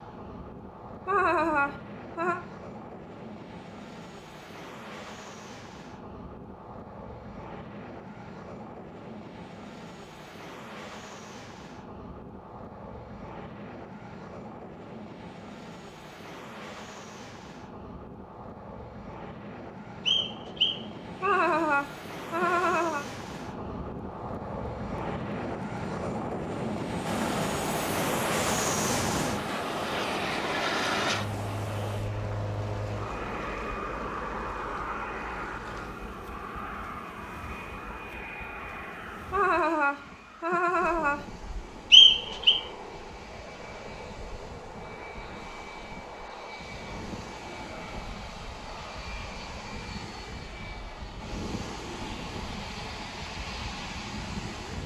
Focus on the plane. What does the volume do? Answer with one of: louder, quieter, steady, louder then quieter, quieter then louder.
louder then quieter.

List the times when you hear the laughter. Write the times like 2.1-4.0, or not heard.
1.1-2.4, 21.2-23.1, 39.3-41.4.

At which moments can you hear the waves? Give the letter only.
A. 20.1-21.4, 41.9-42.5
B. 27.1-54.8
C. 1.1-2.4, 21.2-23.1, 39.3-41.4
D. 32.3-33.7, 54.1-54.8
B.